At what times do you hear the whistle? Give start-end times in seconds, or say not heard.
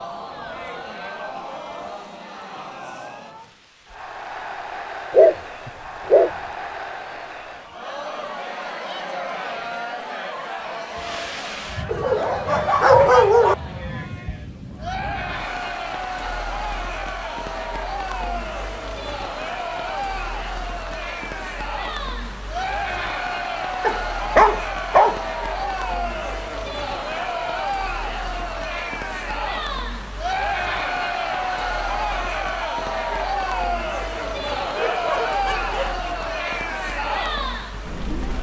not heard.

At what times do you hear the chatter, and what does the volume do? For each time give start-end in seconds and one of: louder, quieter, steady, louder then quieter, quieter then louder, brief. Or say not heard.
0.0-38.3 louder.